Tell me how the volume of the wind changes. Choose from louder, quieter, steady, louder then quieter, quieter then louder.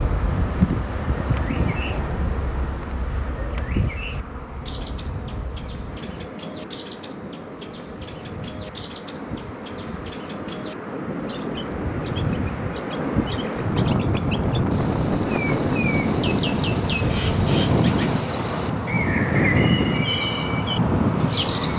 quieter then louder.